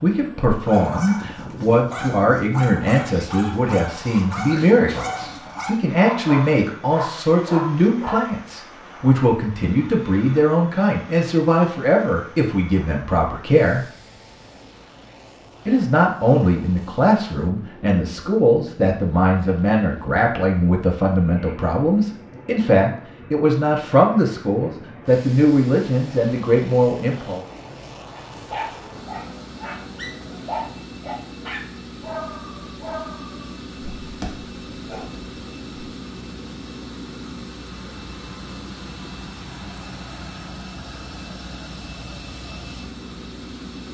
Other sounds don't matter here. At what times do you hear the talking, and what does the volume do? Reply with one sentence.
You can hear the talking from 0.0 to 13.8 s, at a steady volume; and from 15.7 to 27.4 s, at a steady volume.